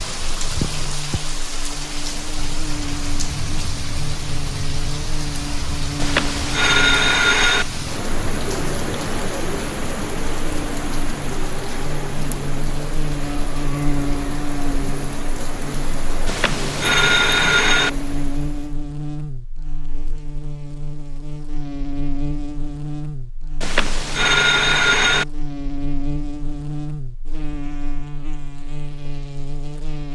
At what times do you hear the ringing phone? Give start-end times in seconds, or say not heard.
6.0-7.7, 16.2-17.9, 23.6-25.2.